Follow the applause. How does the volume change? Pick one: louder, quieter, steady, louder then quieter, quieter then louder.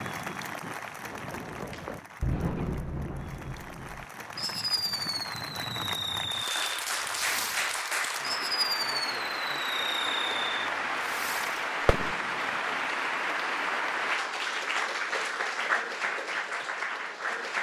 louder.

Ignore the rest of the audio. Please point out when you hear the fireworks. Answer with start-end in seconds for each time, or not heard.
1.1-12.6.